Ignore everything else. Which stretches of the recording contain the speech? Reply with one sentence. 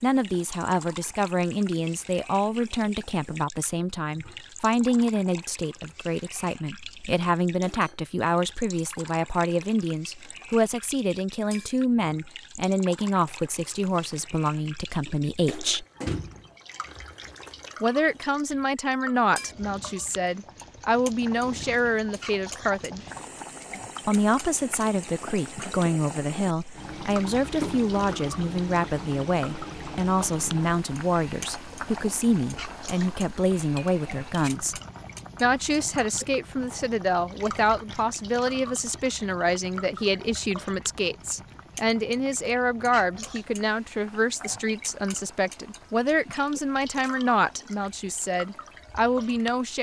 The speech can be heard from 0.0 to 15.8 s, from 17.8 to 23.1 s, from 24.1 to 34.8 s and from 35.4 to 49.7 s.